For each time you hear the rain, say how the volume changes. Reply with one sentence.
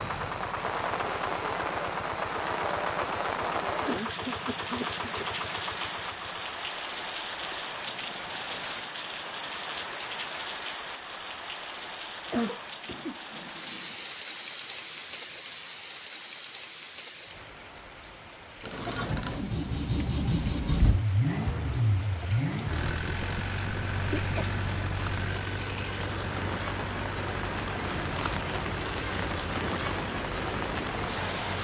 The rain can be heard from 0.0 to 31.5 s, getting quieter then louder.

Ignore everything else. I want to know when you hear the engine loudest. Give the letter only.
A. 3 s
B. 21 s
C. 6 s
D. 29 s
B.